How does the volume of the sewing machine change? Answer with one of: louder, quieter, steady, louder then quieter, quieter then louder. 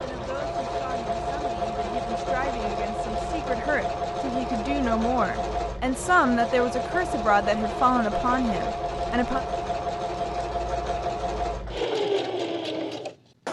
steady.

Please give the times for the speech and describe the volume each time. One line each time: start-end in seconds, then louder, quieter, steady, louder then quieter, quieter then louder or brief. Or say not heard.
0.0-9.4 louder.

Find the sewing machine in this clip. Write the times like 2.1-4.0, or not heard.
0.0-13.4.